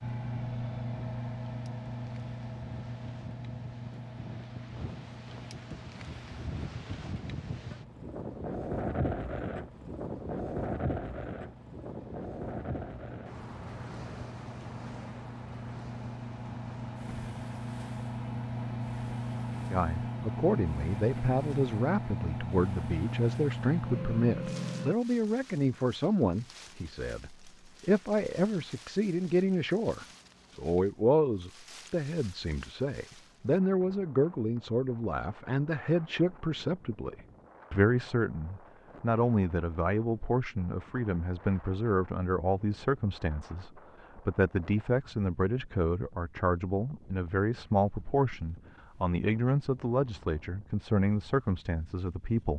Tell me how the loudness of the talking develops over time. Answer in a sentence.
The volume of the talking stays about the same.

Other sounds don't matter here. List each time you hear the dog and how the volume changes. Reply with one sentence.
You can't hear the dog here.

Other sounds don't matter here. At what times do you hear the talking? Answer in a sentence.
You can hear the talking from 19.7 to 52.5 s.